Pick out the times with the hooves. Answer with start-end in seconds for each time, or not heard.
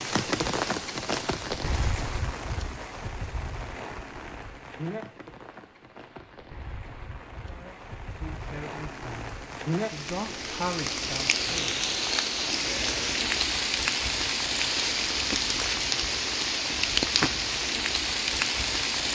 not heard.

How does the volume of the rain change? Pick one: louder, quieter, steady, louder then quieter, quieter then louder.
quieter then louder.